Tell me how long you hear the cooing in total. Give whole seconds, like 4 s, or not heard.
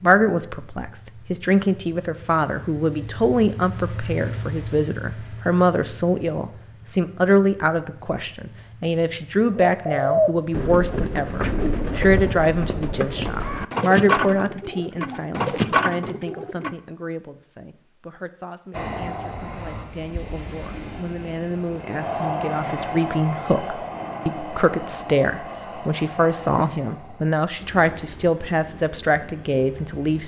7 s.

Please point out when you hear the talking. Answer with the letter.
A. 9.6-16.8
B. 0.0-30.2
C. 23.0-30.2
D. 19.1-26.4
B.